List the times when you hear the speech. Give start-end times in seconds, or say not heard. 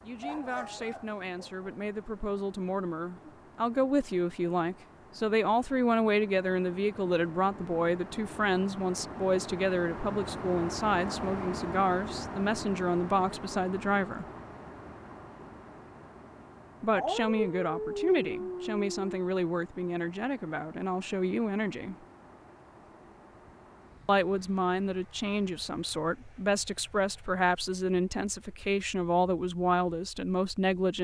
0.0-14.2, 16.8-22.1, 24.1-30.9.